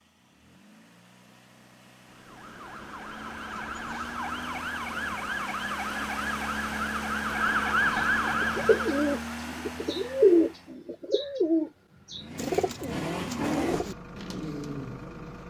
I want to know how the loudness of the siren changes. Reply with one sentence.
The loudness of the siren goes up.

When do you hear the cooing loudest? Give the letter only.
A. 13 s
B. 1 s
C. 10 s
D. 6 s
C.